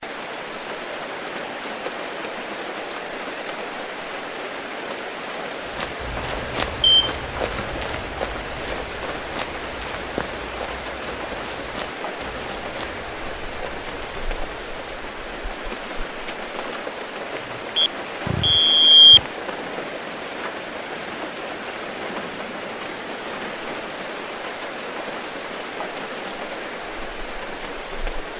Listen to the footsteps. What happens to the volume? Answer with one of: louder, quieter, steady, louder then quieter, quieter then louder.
quieter.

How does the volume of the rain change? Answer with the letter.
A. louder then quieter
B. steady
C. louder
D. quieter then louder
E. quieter
B.